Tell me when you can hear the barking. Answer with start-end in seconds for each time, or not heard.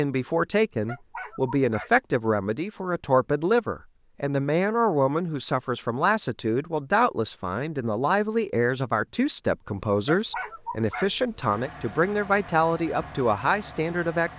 0.8-1.9, 10.1-11.1.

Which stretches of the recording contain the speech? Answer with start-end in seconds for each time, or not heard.
0.0-14.3.